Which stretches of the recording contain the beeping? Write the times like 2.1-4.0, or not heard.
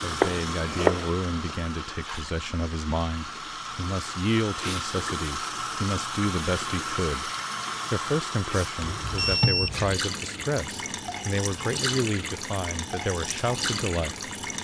8.8-10.0.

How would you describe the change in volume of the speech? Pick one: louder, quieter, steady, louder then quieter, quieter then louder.
steady.